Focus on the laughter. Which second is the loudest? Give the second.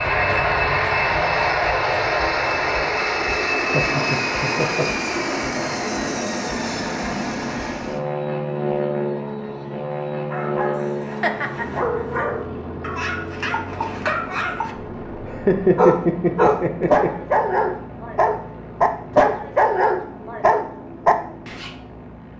16 s.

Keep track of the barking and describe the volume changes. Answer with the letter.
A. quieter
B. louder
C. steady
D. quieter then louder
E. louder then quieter
B.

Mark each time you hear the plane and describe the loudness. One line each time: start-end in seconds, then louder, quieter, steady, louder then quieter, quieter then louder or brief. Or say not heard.
0.0-22.3 quieter.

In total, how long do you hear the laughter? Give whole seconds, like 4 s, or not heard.
4 s.